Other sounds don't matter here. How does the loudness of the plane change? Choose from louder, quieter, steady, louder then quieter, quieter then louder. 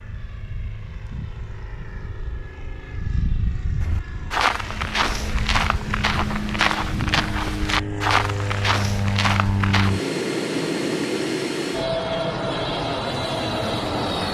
louder.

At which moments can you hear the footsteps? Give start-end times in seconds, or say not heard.
3.8-9.9.